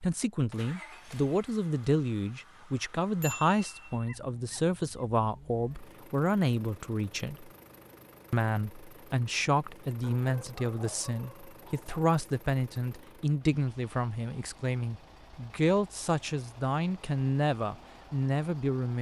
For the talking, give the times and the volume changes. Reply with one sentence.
You can hear the talking from 0.0 to 7.5 s, at a steady volume; and from 8.3 to 18.9 s, at a steady volume.